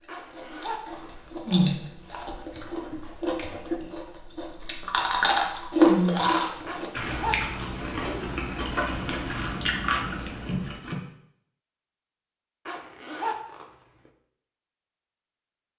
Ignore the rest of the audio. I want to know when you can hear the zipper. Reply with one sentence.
You can hear the zipper from 0.1 to 1.1 s, from 6.7 to 7.7 s and from 12.7 to 13.7 s.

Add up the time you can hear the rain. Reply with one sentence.
The rain can't be heard in this clip.